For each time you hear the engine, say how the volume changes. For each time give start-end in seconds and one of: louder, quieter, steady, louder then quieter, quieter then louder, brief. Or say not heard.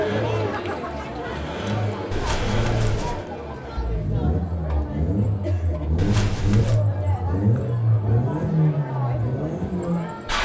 0.0-10.3 louder.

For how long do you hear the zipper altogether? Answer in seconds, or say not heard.
2 s.